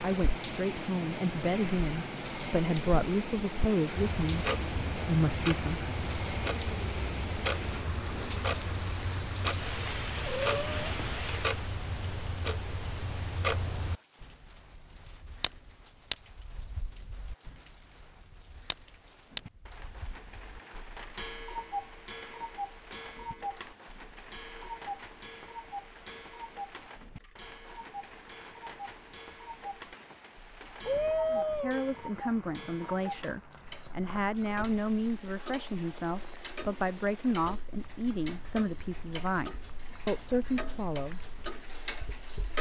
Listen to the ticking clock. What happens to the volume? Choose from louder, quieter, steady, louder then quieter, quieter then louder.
quieter.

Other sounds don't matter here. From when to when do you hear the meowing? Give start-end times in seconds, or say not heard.
10.2-11.2, 30.9-31.8.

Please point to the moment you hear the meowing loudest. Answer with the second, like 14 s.
31 s.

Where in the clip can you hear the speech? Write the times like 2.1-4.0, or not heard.
0.0-5.8, 31.3-41.2.